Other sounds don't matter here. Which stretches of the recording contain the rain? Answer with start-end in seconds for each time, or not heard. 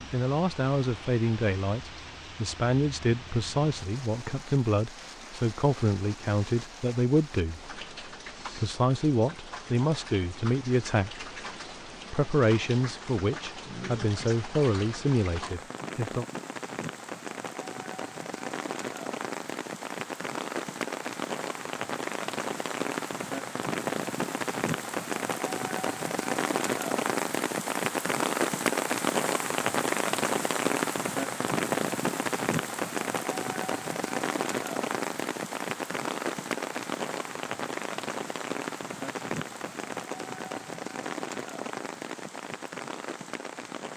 0.0-43.9.